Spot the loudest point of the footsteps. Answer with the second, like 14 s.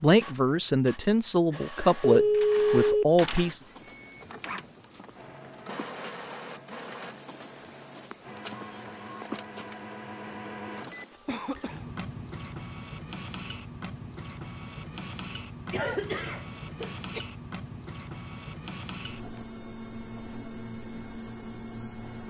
9 s.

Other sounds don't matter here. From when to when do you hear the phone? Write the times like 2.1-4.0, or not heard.
2.0-3.0.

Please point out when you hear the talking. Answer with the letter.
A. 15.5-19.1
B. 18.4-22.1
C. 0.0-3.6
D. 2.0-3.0
C.